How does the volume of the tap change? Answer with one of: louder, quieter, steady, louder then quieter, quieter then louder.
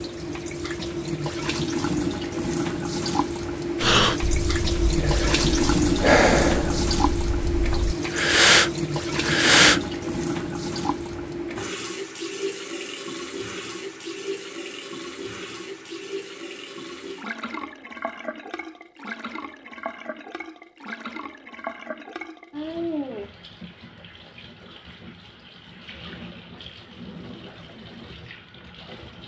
quieter.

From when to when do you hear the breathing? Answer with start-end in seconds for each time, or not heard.
3.8-9.8.